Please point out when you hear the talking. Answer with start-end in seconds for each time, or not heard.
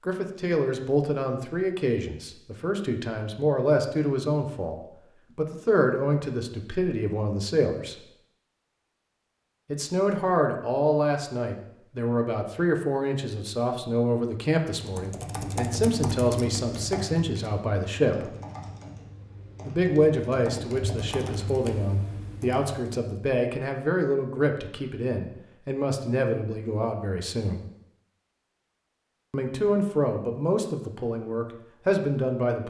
0.0-4.8, 5.3-8.1, 9.7-18.3, 19.6-27.6, 29.3-32.6.